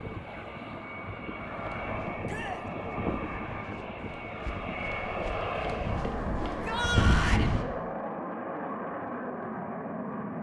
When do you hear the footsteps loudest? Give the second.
7 s.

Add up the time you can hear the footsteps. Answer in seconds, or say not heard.
6 s.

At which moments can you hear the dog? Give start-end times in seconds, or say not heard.
not heard.